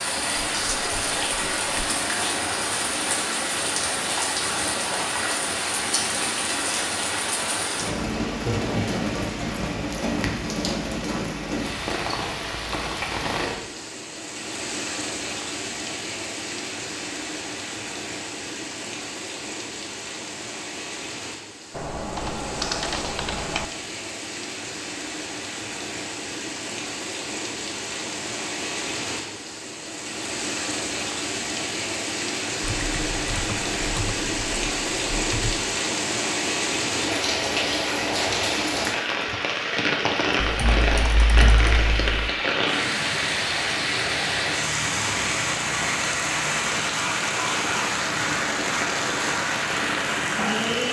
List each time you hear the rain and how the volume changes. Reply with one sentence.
The rain can be heard from 0.0 to 50.8 s, getting quieter then louder.